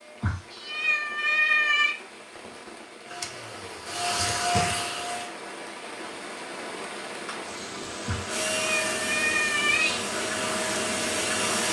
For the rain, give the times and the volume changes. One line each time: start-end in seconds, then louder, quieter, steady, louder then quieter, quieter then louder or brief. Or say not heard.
0.0-11.6 louder.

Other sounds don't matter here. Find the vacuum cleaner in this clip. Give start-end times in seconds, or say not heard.
3.0-5.3, 8.2-11.6.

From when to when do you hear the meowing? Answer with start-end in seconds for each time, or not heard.
0.2-1.9, 8.1-10.0.